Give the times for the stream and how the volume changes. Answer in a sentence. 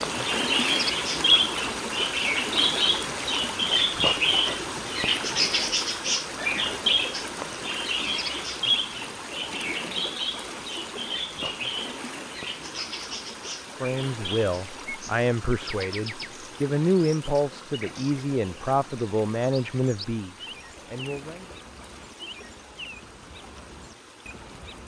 The stream can be heard from 0.0 to 24.8 s, getting quieter.